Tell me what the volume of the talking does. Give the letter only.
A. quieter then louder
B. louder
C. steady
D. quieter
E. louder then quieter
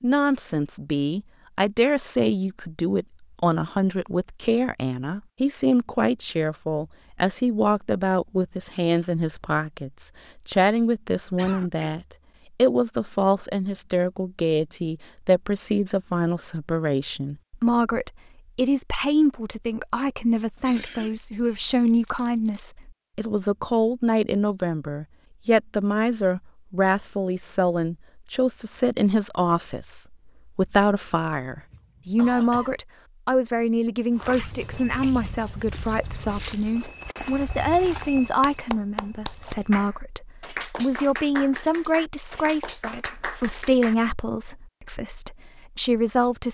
C.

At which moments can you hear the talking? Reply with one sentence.
The talking can be heard from 0.0 to 46.4 s.